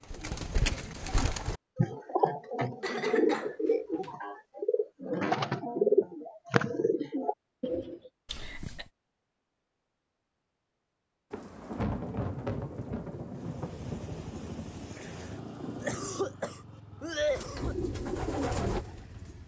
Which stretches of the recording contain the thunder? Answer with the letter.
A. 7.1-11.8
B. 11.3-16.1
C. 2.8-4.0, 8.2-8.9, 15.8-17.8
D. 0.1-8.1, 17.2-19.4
B.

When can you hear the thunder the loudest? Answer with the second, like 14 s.
12 s.